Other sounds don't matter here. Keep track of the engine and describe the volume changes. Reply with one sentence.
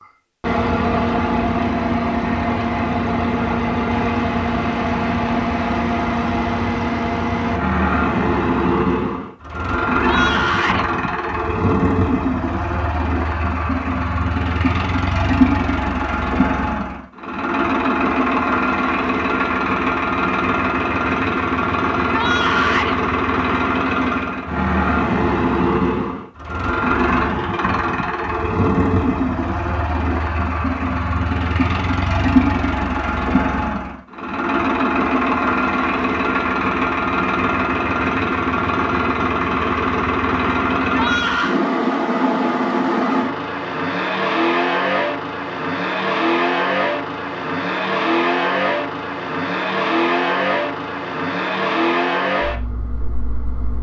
The volume of the engine stays about the same.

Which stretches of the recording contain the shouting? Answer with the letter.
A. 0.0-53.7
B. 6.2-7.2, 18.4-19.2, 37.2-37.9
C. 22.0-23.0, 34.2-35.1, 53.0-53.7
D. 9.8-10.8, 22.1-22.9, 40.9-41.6
D.